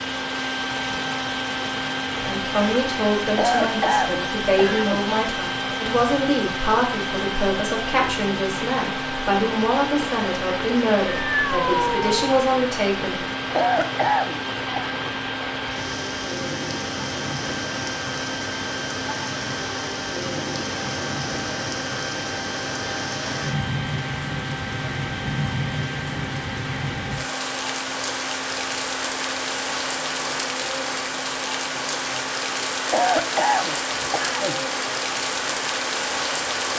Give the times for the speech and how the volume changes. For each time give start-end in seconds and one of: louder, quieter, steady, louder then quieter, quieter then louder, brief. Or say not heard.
2.2-13.2 steady.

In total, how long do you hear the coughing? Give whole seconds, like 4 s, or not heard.
5 s.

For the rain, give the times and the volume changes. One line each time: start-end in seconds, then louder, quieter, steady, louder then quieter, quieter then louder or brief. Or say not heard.
0.0-36.7 louder.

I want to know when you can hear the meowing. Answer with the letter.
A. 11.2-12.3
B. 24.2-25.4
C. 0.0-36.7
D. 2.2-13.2
A.